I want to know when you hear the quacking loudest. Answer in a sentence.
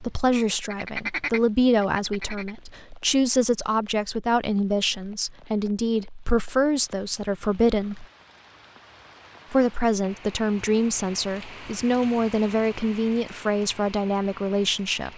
The volume of the quacking peaks at 1 second.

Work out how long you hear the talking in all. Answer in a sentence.
You can hear the talking for 14 seconds altogether.